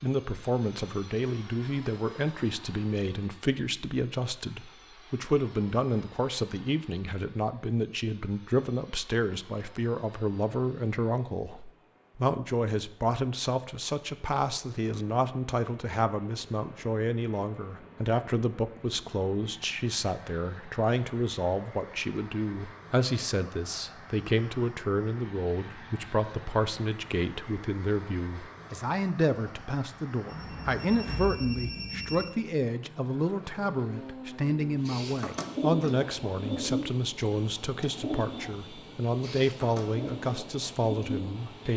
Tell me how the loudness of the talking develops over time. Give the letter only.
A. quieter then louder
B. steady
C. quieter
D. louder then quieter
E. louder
B.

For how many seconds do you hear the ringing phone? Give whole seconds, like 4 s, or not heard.
2 s.